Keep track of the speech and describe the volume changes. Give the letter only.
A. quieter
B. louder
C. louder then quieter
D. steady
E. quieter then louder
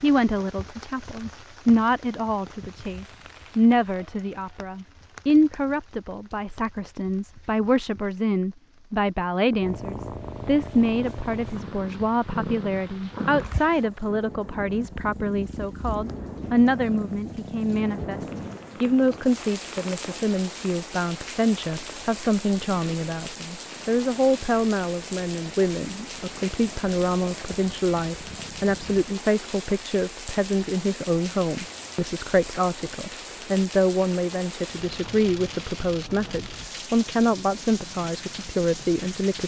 D.